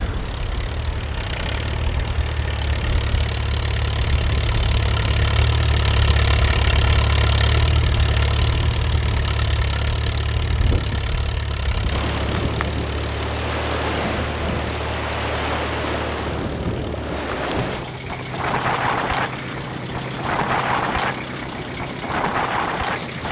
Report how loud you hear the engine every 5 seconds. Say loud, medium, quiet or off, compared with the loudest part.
medium, loud, medium, medium, medium.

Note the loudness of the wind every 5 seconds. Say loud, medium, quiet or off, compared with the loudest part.
medium, medium, loud, loud, loud.